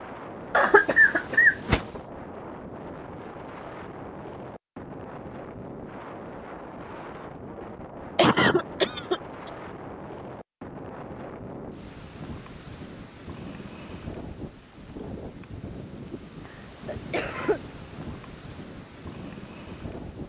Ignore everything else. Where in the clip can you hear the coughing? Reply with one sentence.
You can hear the coughing from 0.5 to 2.0 s, from 8.2 to 9.5 s and from 16.4 to 17.6 s.